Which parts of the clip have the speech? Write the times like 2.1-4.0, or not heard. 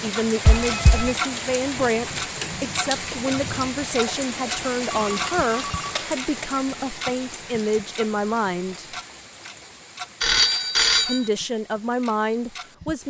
0.0-8.9, 11.1-13.0.